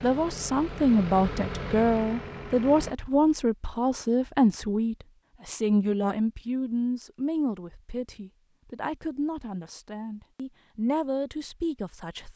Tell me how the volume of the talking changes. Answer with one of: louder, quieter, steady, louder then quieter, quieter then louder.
quieter.